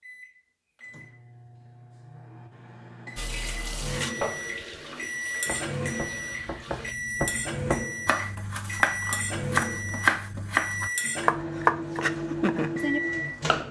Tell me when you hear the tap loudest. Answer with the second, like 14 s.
4 s.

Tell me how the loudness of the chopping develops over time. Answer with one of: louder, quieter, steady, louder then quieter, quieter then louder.
louder.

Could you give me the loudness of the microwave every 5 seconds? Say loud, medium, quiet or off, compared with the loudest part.
medium, loud, loud.